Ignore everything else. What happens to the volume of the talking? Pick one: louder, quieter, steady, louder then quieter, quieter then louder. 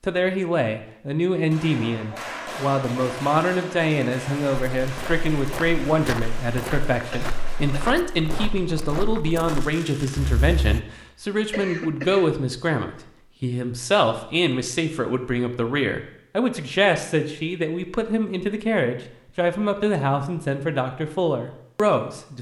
steady.